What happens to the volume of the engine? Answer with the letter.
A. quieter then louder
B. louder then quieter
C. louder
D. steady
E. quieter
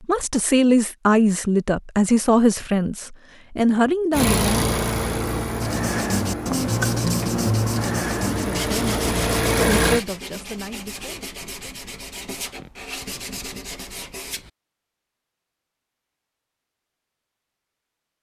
A.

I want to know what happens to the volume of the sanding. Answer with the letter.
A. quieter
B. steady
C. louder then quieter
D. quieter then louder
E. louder
A.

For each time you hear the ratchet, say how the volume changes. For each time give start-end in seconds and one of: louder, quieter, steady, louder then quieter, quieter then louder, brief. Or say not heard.
not heard.